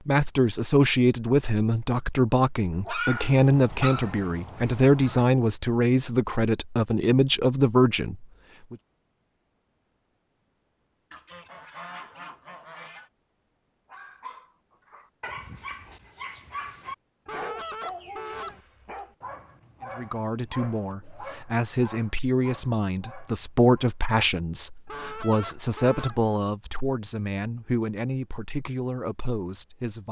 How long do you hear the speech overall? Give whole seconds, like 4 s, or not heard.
19 s.